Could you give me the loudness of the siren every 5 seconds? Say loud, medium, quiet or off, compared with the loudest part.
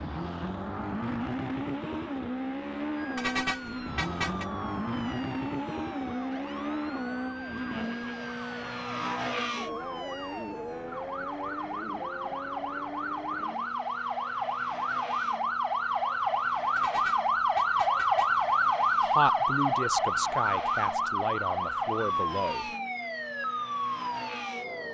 quiet, quiet, medium, loud, medium.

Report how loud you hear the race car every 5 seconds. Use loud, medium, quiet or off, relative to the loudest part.
loud, loud, medium, quiet, medium.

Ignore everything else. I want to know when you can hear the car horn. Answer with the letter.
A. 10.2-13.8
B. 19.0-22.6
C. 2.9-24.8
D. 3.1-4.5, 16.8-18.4
D.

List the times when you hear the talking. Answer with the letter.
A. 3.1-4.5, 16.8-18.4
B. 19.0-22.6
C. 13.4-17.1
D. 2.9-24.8
B.